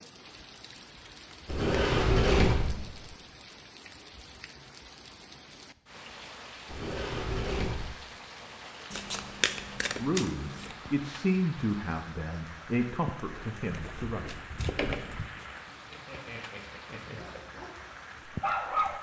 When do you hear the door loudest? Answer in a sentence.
The loudest moment of the door is at 2 seconds.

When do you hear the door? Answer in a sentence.
The door can be heard from 1.4 to 3.1 s, from 6.7 to 8.0 s and from 13.2 to 15.2 s.